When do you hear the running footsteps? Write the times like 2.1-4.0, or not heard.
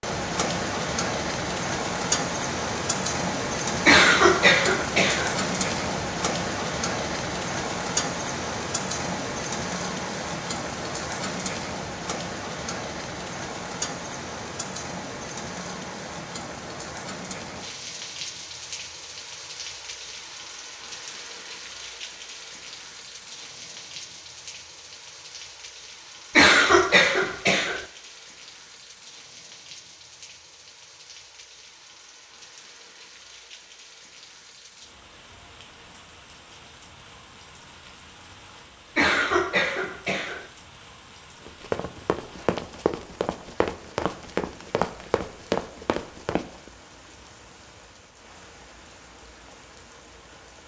41.5-46.7.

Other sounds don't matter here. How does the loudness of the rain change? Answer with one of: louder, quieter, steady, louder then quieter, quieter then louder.
quieter.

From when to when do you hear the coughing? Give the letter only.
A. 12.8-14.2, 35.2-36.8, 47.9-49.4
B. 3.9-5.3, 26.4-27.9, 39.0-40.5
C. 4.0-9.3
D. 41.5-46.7
B.